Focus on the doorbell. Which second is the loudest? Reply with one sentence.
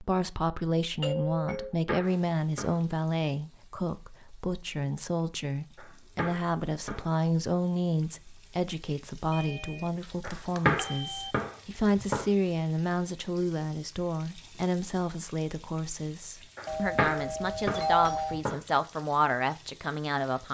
The volume of the doorbell peaks at 18 seconds.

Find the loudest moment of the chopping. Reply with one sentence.
The volume of the chopping peaks at 11 seconds.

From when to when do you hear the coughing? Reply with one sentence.
The coughing can't be heard in this clip.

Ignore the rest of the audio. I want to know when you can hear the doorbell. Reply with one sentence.
You can hear the doorbell from 1.0 to 1.8 s, from 9.3 to 11.3 s and from 16.6 to 18.4 s.